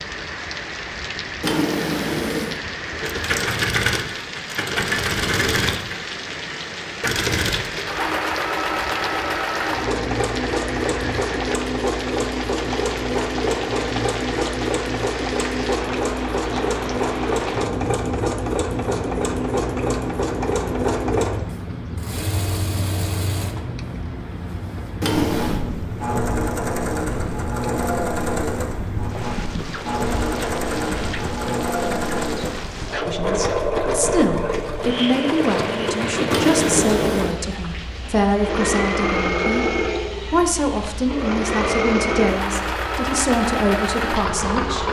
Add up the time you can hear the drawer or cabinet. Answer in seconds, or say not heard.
3 s.